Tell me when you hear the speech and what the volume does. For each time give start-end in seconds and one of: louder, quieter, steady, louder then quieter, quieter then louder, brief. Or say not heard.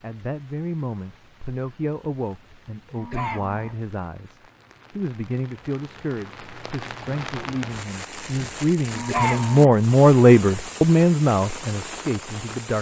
0.0-12.7 louder.